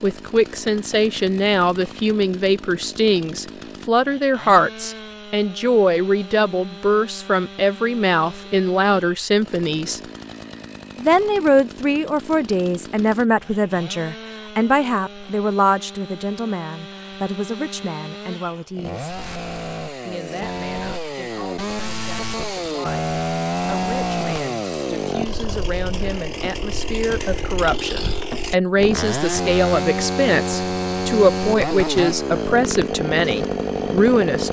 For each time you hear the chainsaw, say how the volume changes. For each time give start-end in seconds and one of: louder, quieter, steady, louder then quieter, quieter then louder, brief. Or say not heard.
0.0-34.4 louder.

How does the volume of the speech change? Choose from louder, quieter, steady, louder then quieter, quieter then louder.
quieter then louder.